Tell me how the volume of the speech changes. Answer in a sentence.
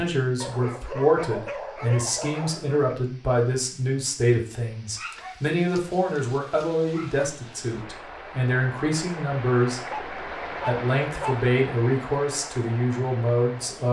The volume of the speech stays about the same.